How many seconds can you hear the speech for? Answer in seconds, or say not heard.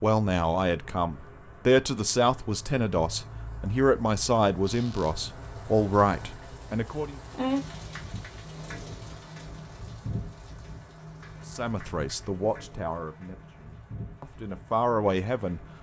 11 s.